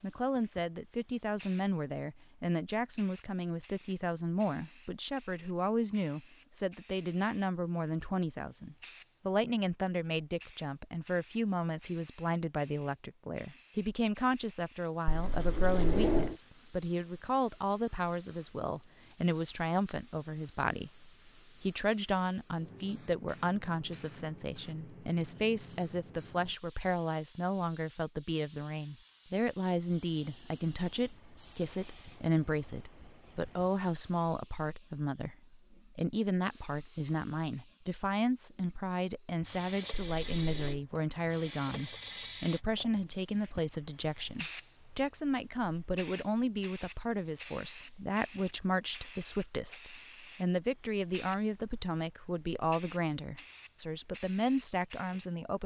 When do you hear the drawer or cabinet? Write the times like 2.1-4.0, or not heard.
15.1-16.4, 39.9-40.8.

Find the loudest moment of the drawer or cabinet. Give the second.
16 s.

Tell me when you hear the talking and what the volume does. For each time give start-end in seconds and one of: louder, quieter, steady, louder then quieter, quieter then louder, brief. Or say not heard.
0.0-55.6 steady.